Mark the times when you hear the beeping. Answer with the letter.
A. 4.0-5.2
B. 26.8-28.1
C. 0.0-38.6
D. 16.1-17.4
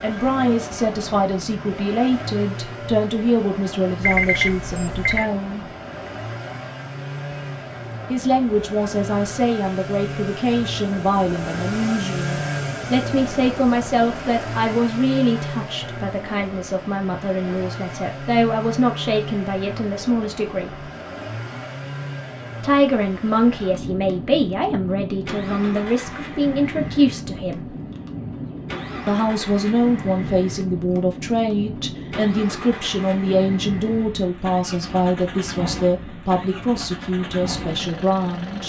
A.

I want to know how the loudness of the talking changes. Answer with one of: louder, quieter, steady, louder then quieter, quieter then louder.
steady.